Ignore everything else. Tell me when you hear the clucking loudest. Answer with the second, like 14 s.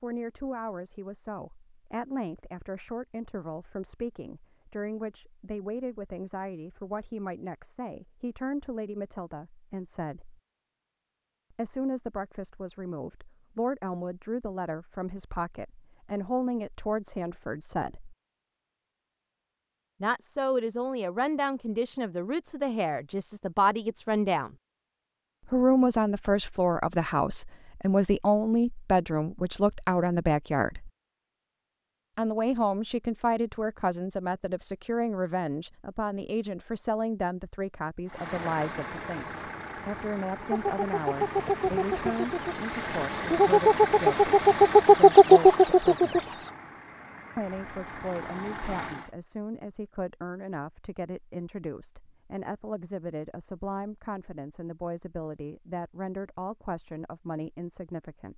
45 s.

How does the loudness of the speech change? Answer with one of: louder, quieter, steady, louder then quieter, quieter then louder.
louder then quieter.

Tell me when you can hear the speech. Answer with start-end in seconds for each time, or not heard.
0.0-10.4, 11.5-18.1, 20.0-24.5, 25.4-30.9, 32.1-46.2, 47.4-58.3.